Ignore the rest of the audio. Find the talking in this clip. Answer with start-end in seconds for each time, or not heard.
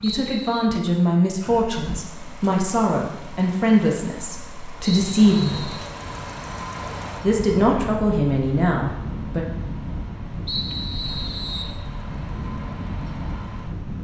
0.0-5.7, 7.2-9.4.